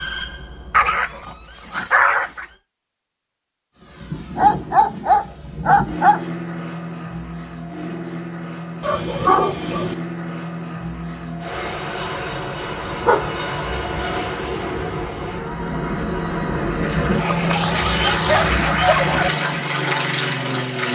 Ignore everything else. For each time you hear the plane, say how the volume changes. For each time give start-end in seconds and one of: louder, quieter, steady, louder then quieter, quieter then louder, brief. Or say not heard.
3.8-20.9 louder.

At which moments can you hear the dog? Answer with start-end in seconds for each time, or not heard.
0.7-2.5, 4.3-6.2, 8.8-9.9, 12.6-13.3, 17.2-19.3.